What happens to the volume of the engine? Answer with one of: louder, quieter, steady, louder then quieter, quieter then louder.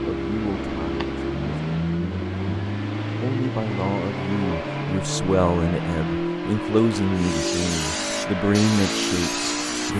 steady.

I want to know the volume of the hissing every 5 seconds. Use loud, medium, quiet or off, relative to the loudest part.
off, loud.